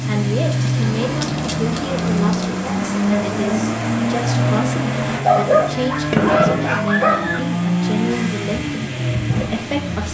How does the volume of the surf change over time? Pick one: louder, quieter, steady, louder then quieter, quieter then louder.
steady.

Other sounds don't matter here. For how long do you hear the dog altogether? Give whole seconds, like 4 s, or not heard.
4 s.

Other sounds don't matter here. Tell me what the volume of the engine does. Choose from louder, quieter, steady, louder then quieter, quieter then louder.
steady.